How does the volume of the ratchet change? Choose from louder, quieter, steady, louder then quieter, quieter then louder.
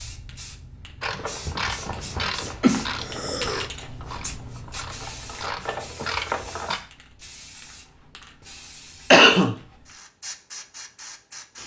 quieter then louder.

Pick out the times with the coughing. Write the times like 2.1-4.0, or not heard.
1.4-3.6, 9.1-9.6.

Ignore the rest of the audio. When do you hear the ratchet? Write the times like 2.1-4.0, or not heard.
1.0-6.8.